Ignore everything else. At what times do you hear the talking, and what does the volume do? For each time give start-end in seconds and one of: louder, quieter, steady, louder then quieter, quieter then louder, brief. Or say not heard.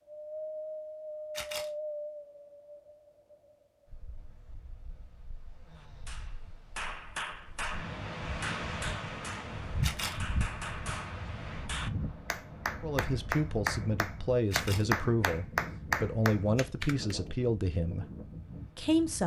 12.8-18.1 steady
18.8-19.2 brief.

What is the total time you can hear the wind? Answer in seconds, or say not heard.
19 s.